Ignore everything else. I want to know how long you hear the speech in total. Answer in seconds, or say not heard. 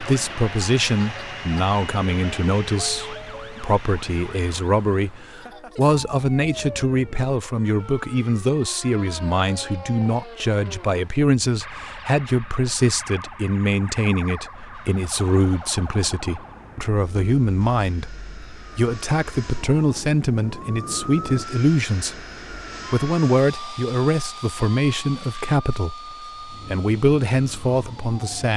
28 s.